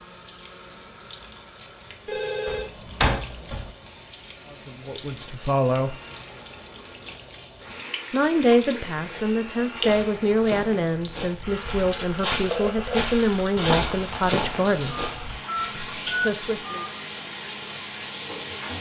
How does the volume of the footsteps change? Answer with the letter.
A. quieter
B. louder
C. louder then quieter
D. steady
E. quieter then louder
C.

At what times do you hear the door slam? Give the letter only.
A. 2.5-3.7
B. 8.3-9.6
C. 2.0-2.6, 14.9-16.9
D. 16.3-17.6
A.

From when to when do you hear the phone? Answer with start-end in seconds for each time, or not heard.
2.0-2.6, 14.9-16.9.